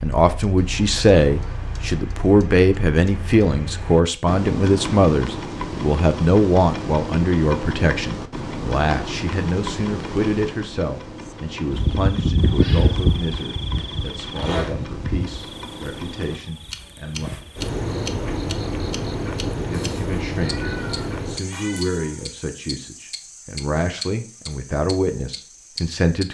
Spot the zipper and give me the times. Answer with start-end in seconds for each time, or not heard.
13.8-14.8.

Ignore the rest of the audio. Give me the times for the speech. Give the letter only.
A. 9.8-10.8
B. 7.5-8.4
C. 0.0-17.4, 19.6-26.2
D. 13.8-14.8
C.